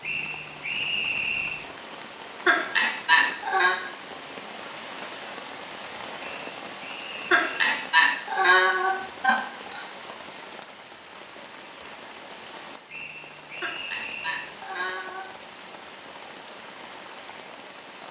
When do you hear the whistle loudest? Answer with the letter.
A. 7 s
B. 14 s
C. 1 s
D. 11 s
C.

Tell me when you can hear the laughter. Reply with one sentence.
You can hear the laughter from 2.5 to 3.8 s, from 7.3 to 9.8 s and from 13.6 to 15.3 s.